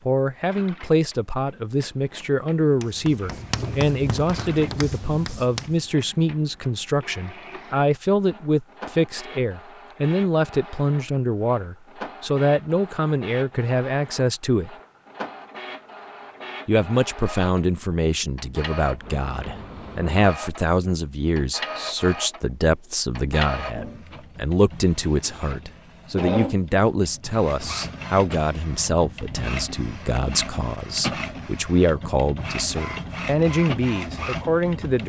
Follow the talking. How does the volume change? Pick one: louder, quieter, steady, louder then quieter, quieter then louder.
steady.